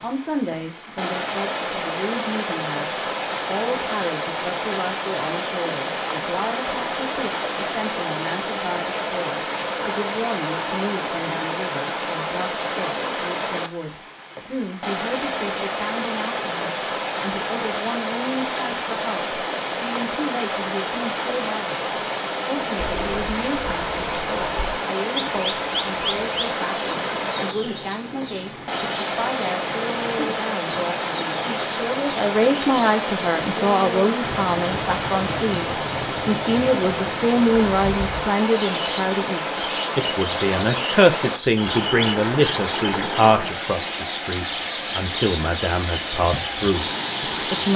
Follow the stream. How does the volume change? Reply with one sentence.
The loudness of the stream stays about the same.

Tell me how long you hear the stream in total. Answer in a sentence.
You can hear the stream for 48 seconds altogether.